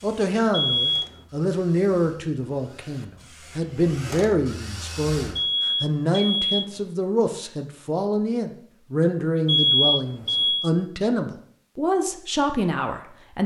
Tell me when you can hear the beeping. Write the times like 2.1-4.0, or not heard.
0.5-1.1, 5.3-6.7, 9.4-10.7.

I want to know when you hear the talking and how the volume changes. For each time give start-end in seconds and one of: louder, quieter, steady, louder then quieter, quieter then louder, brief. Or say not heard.
0.0-13.4 steady.